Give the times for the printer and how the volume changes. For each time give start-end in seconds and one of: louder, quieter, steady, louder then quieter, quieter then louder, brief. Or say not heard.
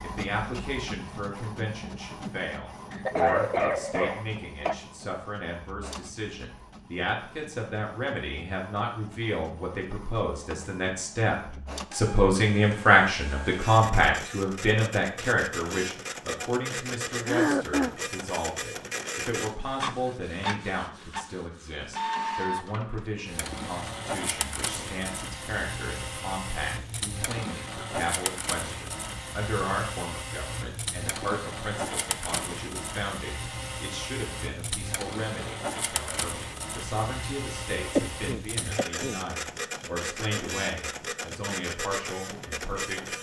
0.0-43.1 louder.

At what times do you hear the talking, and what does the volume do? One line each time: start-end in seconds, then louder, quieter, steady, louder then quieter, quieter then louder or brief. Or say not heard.
0.0-43.1 louder then quieter.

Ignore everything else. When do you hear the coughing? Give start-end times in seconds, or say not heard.
2.9-4.8, 17.2-17.9, 38.0-39.2.